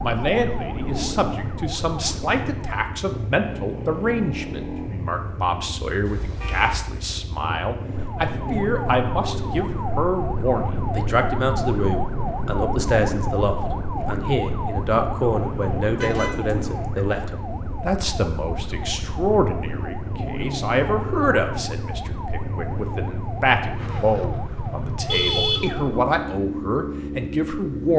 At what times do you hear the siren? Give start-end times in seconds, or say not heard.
0.0-2.9, 8.0-25.9.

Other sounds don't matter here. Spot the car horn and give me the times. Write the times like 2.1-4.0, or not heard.
6.0-6.9, 15.9-16.8, 25.1-26.0.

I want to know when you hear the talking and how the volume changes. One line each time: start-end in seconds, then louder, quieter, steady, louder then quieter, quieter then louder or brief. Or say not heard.
0.0-27.9 steady.